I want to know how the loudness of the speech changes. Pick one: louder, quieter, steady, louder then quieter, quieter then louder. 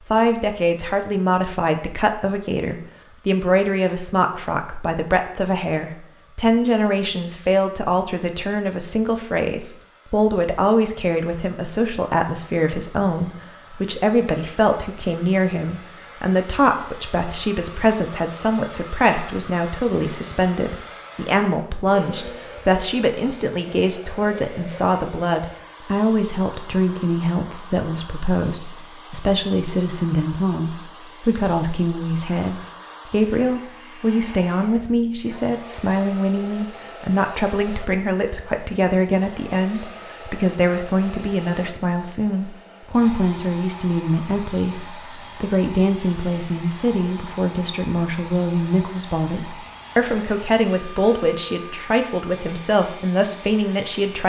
steady.